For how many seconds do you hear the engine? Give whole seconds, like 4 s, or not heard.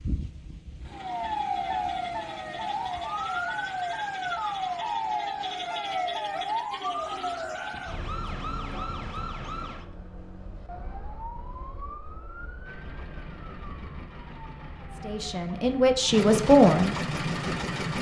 5 s.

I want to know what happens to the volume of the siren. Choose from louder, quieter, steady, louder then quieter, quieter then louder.
quieter.